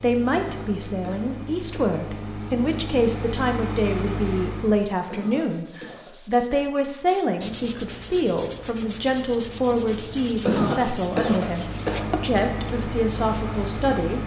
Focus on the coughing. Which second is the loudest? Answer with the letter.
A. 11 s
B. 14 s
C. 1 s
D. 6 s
A.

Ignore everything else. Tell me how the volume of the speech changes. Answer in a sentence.
The volume of the speech stays about the same.